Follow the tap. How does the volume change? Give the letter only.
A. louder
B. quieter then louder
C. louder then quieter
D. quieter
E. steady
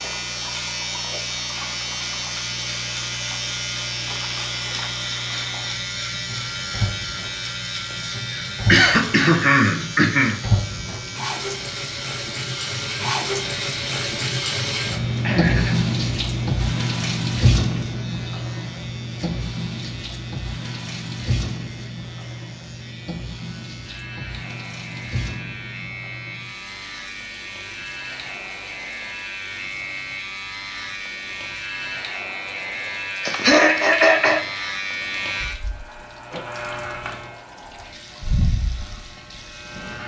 C.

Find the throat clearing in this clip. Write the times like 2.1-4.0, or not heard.
8.3-10.4, 15.2-15.8, 33.2-34.4.